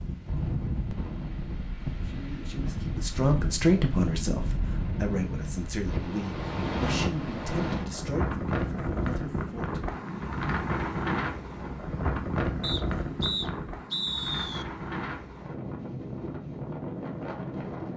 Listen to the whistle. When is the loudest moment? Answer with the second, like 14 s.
14 s.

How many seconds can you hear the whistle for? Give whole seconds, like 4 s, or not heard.
2 s.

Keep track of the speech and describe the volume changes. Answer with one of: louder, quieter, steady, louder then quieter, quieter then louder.
quieter.